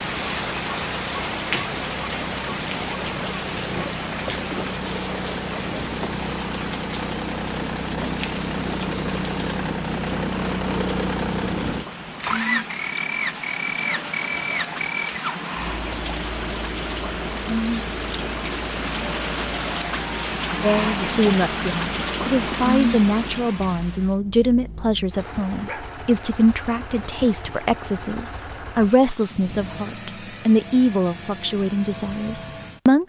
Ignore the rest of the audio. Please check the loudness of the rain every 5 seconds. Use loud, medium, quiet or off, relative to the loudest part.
loud, medium, medium, loud, loud, off, off.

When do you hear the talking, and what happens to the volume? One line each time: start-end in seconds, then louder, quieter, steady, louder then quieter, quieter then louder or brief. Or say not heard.
20.6-33.0 steady.